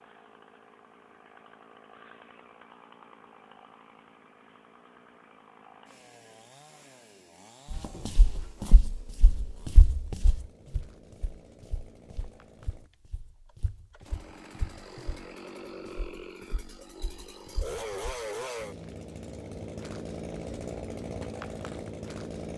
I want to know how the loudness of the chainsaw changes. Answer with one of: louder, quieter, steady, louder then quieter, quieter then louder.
louder.